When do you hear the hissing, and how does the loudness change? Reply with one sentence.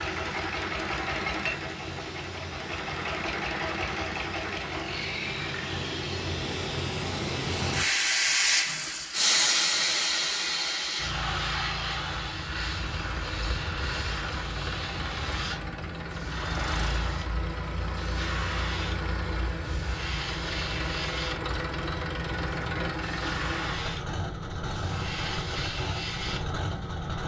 You can hear the hissing from 0.0 to 27.2 s, getting louder then quieter.